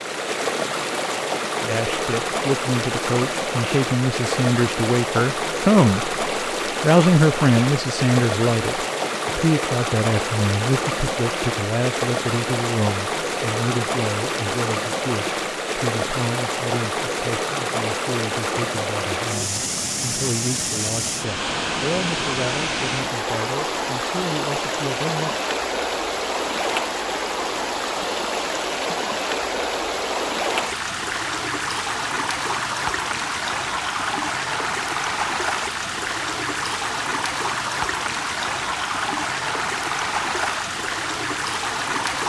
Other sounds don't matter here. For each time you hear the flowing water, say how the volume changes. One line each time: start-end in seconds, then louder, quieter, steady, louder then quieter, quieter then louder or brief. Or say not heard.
0.0-42.2 steady.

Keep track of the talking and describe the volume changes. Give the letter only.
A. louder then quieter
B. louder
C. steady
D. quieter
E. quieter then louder
D.